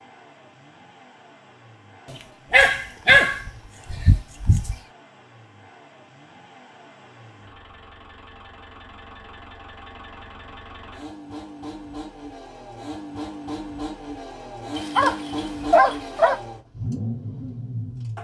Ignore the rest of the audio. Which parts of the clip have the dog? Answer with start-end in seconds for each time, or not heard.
2.5-4.8, 14.8-16.4.